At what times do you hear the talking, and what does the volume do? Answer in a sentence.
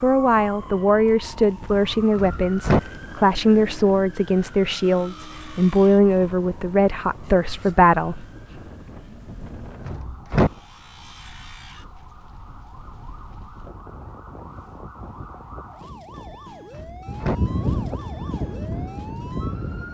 The talking can be heard from 0.0 to 8.2 s, at a steady volume.